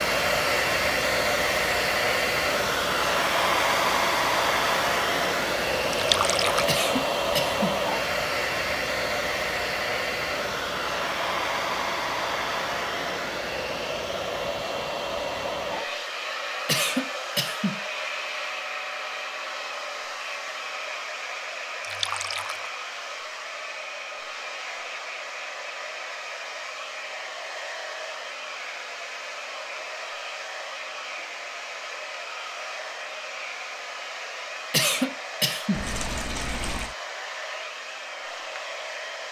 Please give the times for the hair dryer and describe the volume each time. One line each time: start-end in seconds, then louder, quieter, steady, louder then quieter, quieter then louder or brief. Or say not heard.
0.0-39.2 quieter.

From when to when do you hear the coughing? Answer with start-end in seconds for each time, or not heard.
6.7-7.8, 16.6-17.8, 34.7-35.9.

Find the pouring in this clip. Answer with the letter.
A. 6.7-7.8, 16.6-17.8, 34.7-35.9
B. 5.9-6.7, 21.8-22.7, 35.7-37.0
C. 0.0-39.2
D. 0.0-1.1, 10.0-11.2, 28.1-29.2
B.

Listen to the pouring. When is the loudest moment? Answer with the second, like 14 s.
6 s.